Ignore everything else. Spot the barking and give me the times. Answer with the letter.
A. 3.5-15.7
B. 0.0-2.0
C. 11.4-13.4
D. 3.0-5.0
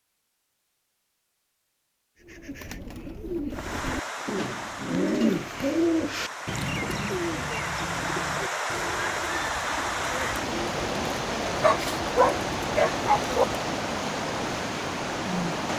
C.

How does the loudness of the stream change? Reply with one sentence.
The loudness of the stream goes up.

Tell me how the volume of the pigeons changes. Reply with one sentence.
The volume of the pigeons goes up, then down.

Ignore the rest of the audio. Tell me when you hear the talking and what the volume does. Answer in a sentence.
The talking can't be heard in this clip.